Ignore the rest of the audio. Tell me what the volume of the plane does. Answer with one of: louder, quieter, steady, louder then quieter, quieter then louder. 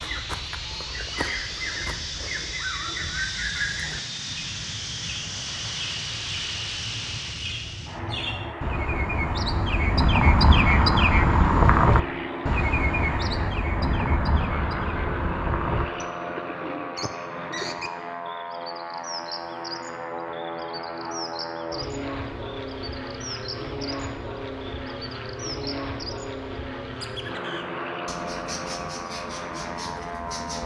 steady.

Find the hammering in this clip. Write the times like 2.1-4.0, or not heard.
not heard.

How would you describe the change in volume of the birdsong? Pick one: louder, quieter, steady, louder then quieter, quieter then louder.
louder then quieter.